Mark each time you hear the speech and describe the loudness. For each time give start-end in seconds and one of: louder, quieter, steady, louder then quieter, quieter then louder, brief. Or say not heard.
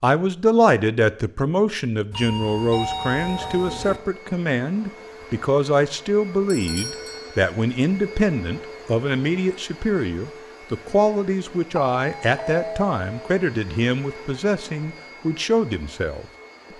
0.0-16.2 steady.